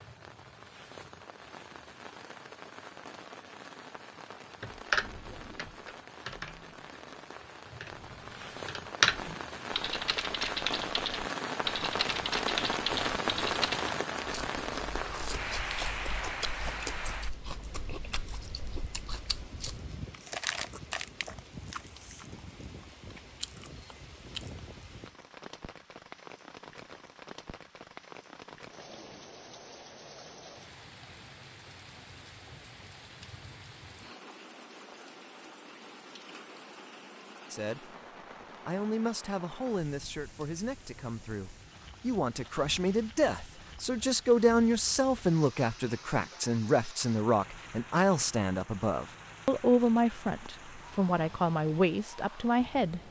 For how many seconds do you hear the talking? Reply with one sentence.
The talking can be heard for 15 seconds in total.